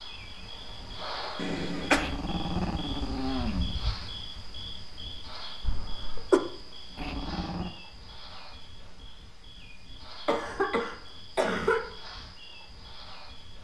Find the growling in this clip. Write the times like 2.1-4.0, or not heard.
1.9-4.0, 7.0-7.8.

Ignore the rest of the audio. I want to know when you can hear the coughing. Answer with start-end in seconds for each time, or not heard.
1.4-2.0, 5.6-6.4, 10.2-11.8.